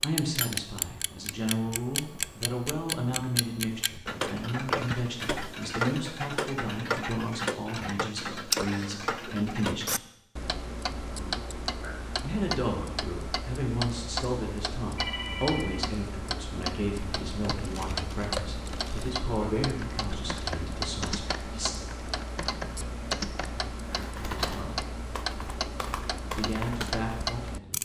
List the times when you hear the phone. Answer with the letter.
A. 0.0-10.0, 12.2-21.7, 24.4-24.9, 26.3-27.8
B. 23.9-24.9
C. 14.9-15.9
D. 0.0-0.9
C.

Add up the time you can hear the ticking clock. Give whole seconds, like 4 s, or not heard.
28 s.